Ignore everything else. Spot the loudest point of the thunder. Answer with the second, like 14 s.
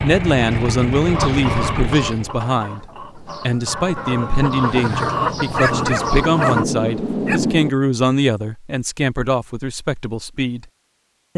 7 s.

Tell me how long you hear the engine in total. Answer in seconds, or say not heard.
2 s.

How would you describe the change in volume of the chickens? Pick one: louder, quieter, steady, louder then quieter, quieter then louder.
quieter then louder.